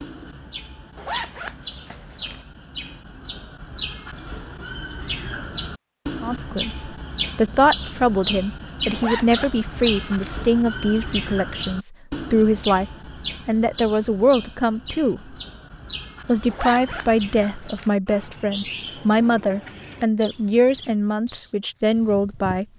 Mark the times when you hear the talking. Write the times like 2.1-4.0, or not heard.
6.2-12.8, 13.4-15.3, 16.2-22.6.